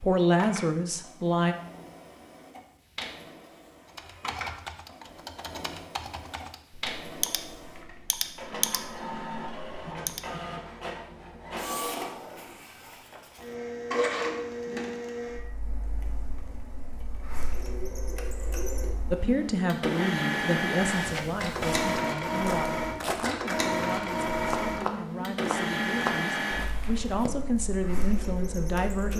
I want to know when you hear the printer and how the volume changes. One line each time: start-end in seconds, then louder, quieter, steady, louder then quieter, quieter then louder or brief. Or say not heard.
0.0-29.1 louder.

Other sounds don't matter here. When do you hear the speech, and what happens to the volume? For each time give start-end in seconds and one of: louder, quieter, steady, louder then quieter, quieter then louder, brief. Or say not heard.
0.0-1.6 brief
19.1-29.1 quieter then louder.